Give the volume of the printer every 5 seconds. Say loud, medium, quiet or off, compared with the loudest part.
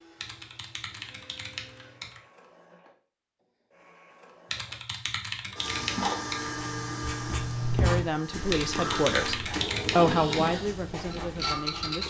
quiet, loud, loud.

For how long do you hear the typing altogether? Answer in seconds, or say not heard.
6 s.